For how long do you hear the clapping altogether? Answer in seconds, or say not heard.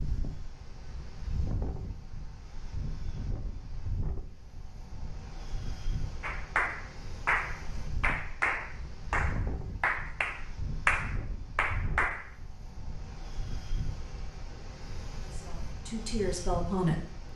6 s.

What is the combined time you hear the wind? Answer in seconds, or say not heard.
17 s.